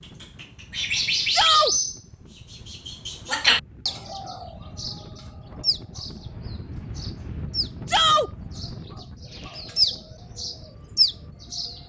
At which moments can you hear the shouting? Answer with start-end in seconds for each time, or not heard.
1.3-1.8, 7.8-8.3.